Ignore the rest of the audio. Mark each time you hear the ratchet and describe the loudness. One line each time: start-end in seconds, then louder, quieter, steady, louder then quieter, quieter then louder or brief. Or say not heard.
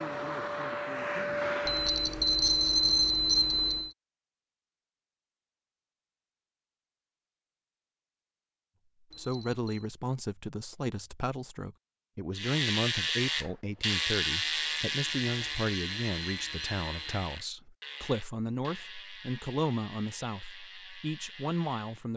12.3-22.1 quieter.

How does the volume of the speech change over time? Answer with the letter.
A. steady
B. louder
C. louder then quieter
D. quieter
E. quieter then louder
A.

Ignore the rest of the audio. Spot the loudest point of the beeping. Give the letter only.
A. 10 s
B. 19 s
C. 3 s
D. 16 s
C.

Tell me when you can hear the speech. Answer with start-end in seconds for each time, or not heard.
9.2-22.1.